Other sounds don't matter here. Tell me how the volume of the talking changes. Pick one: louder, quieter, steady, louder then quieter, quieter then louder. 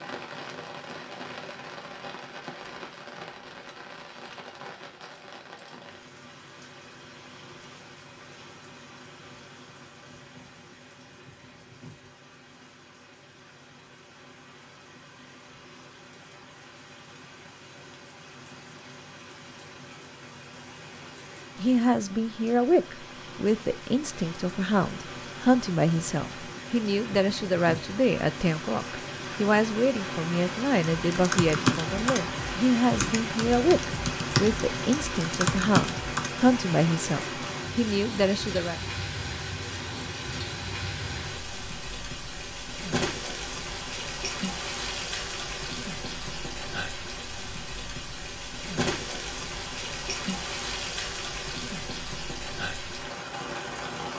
steady.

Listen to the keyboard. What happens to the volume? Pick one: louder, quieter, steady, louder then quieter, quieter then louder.
quieter then louder.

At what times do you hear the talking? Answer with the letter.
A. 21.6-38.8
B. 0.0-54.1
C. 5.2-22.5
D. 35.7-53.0
A.